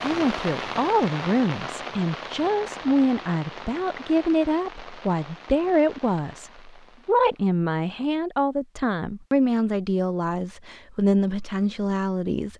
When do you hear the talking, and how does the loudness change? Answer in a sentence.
The talking can be heard from 0.0 to 12.5 s, at a steady volume.